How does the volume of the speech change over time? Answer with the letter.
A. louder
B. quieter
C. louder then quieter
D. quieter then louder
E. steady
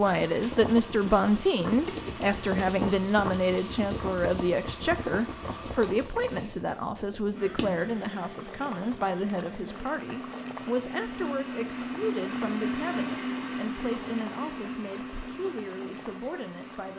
B.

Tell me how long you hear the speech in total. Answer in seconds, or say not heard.
17 s.